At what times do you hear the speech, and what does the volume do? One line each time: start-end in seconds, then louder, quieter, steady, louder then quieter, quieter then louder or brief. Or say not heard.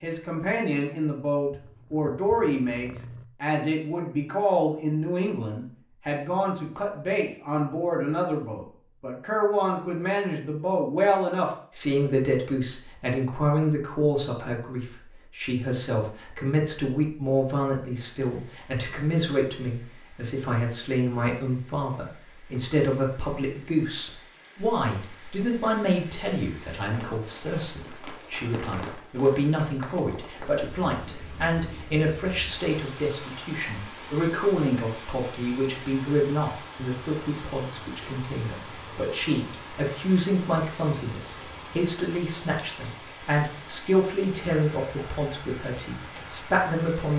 0.0-47.1 steady.